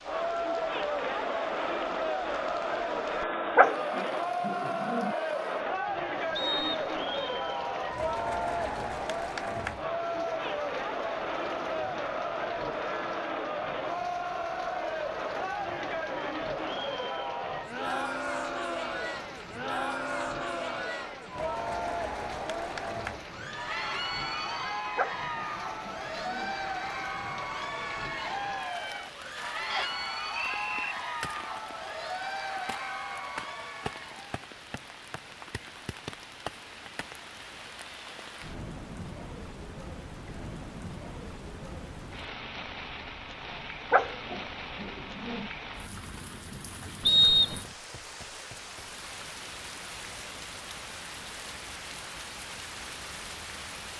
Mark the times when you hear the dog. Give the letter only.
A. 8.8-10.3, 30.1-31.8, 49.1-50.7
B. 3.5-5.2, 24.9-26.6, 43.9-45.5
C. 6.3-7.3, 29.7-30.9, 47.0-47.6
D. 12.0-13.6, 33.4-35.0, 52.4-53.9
B.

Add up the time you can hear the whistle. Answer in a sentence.
The whistle can be heard for 3 seconds in total.